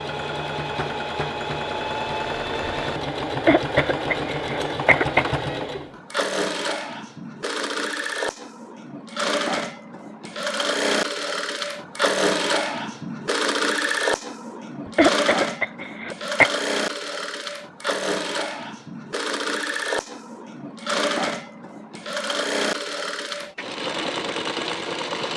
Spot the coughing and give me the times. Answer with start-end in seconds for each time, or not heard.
3.4-5.3, 14.8-16.5.